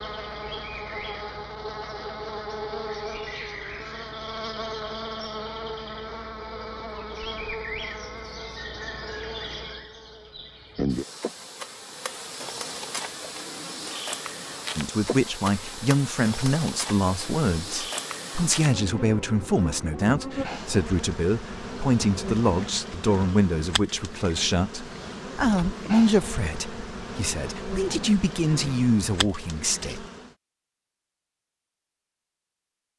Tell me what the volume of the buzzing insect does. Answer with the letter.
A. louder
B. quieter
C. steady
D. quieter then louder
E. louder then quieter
C.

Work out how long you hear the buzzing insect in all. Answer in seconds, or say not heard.
30 s.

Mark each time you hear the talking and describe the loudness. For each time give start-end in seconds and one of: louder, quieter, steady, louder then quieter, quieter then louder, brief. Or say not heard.
14.8-30.1 steady.